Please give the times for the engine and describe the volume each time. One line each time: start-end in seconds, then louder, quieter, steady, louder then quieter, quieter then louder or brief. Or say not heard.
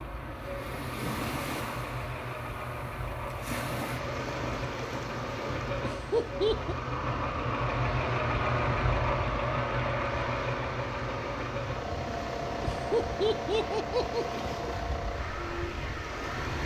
0.0-16.6 louder then quieter.